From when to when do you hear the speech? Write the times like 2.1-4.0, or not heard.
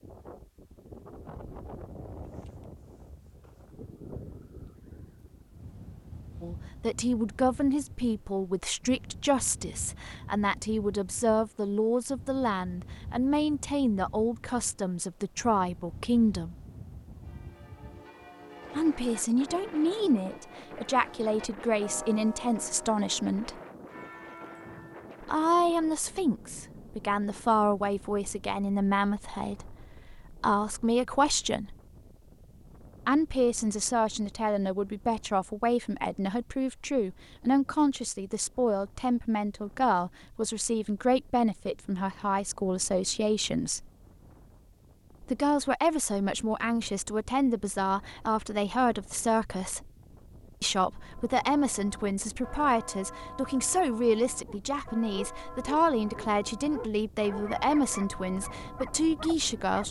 6.4-16.6, 18.8-23.6, 25.2-31.8, 33.0-43.9, 45.2-49.9, 50.6-59.8.